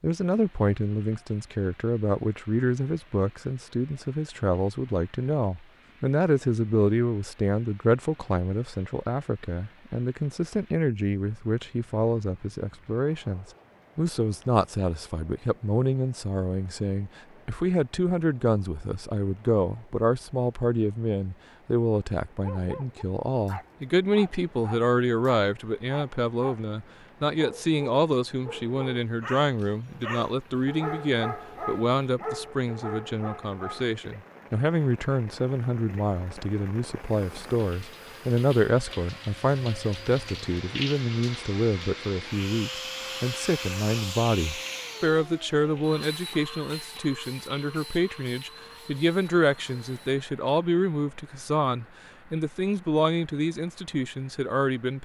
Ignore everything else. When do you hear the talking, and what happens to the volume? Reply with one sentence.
You can hear the talking from 0.0 to 55.0 s, at a steady volume.